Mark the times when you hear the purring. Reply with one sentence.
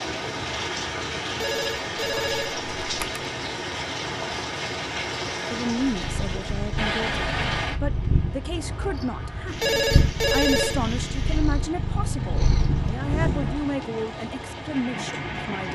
The purring can be heard from 5.9 to 13.7 s.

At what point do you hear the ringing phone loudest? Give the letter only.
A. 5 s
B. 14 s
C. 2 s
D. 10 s
D.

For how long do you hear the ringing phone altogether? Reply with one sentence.
You can hear the ringing phone for 3 seconds altogether.